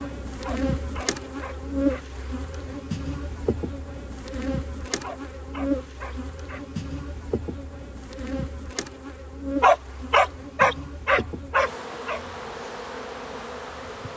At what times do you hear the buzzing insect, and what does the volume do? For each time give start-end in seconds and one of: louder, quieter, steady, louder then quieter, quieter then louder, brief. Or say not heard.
0.0-14.1 quieter.